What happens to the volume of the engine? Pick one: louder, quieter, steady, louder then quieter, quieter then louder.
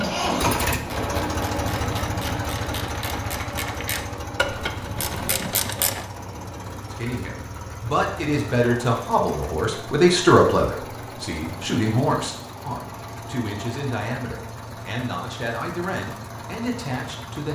quieter.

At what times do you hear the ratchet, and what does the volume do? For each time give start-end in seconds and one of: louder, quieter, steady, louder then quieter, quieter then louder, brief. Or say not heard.
0.0-6.0 louder.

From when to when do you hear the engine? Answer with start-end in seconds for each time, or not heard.
0.0-17.5.